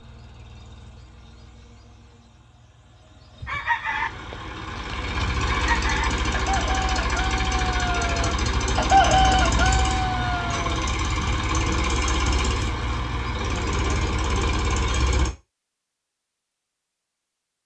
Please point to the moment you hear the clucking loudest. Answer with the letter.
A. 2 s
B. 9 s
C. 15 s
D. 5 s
B.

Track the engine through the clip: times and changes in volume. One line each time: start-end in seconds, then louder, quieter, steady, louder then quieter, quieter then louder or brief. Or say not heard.
0.0-15.3 louder.